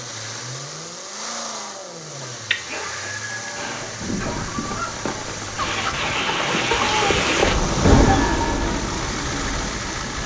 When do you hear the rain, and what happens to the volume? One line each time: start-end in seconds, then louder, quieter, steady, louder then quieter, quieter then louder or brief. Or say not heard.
3.5-10.2 louder then quieter.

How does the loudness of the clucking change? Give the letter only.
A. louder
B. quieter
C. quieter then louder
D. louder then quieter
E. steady
A.